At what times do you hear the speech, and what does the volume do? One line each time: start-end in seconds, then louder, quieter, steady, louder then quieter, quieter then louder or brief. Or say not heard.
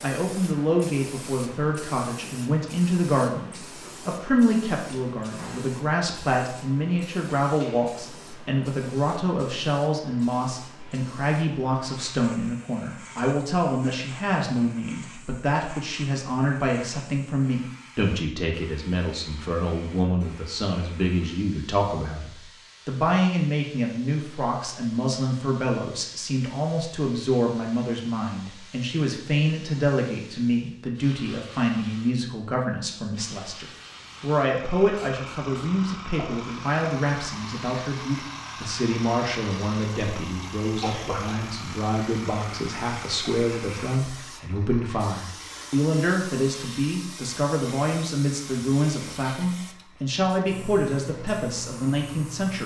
0.0-52.6 steady.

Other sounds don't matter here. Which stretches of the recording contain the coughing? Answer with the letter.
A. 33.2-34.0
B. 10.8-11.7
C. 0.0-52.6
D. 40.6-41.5
D.